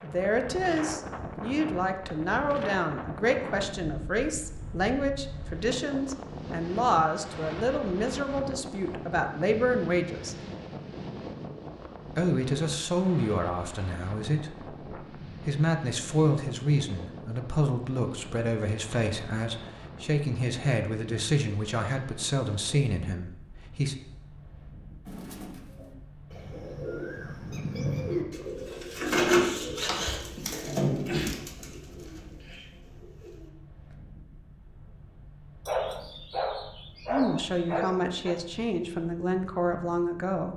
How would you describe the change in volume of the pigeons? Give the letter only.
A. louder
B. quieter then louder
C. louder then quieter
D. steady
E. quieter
C.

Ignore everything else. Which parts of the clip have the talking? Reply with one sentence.
You can hear the talking from 0.0 to 10.3 s, from 12.1 to 23.9 s and from 37.1 to 40.5 s.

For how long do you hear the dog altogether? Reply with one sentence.
The dog can be heard for 3 seconds in total.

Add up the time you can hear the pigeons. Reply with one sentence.
You can hear the pigeons for 9 seconds altogether.